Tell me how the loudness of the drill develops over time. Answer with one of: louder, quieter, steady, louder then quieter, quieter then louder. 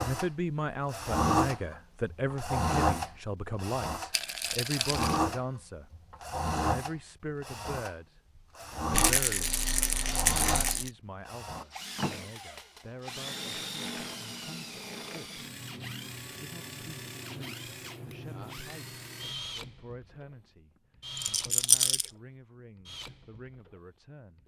quieter.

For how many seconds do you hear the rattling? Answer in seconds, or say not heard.
4 s.